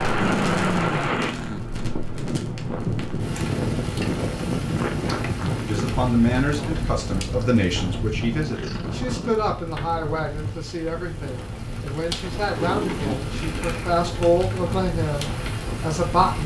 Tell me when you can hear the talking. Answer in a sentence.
The talking can be heard from 5.7 to 16.4 s.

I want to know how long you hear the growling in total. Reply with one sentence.
You can hear the growling for 5 seconds altogether.